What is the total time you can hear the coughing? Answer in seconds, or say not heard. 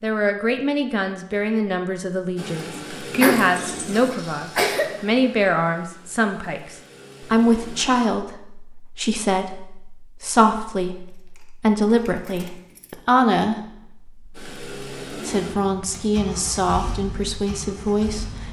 2 s.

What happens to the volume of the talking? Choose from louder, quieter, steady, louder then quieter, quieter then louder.
steady.